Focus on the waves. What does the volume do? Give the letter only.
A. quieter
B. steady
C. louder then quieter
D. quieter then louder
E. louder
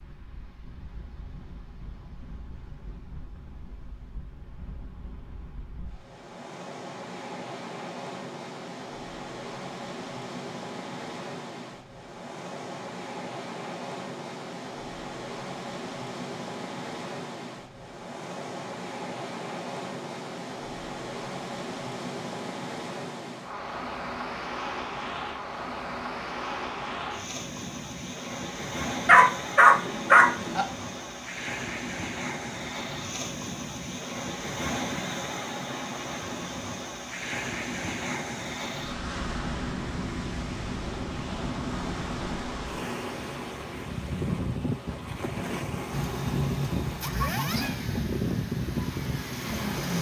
E.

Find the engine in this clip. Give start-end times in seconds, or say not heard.
45.9-49.9.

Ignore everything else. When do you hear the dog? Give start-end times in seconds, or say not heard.
29.1-30.6.